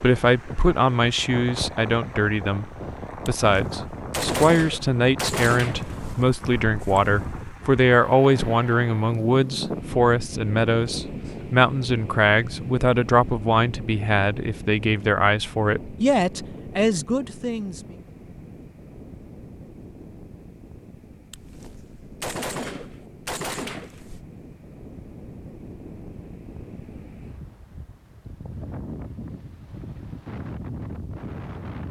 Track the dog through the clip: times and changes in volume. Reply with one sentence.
You can't hear the dog here.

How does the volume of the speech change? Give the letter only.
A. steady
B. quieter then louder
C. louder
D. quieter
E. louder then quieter
A.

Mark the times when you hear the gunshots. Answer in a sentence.
The gunshots can be heard from 3.3 to 7.5 s and from 21.3 to 24.2 s.